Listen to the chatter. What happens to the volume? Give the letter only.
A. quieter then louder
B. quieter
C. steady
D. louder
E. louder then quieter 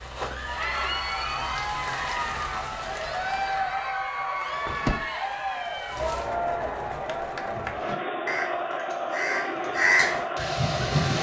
C.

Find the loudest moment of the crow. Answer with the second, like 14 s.
10 s.